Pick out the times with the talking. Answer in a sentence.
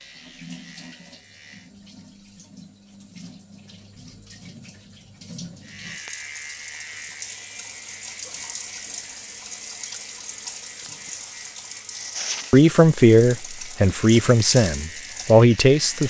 The talking can be heard from 12.5 to 16.0 s.